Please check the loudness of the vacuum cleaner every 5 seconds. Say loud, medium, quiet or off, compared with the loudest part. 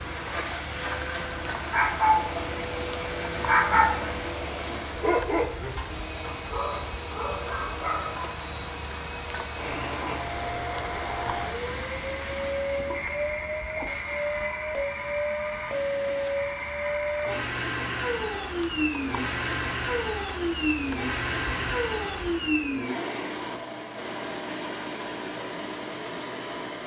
medium, medium, loud, loud, loud, medium.